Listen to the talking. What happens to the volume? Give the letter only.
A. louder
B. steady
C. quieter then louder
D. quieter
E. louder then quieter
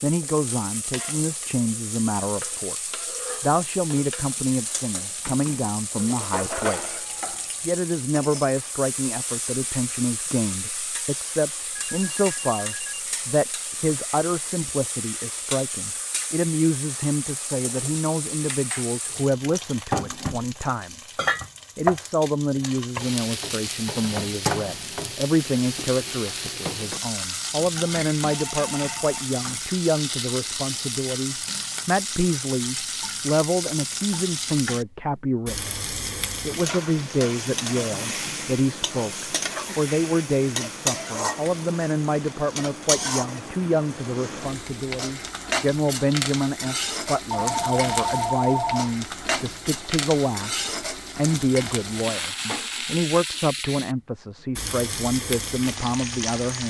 B.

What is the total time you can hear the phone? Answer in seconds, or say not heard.
4 s.